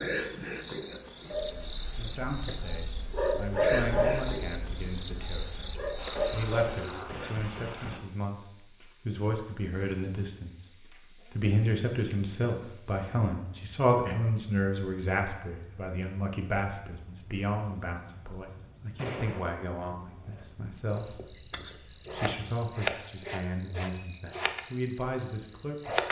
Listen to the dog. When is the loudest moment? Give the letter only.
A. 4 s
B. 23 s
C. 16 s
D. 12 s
A.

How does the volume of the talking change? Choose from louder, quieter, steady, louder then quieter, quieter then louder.
louder then quieter.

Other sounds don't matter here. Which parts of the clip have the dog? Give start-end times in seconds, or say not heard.
1.2-6.8.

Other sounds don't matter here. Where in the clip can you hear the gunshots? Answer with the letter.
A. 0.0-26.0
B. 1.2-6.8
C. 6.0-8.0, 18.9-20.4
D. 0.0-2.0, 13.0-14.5
C.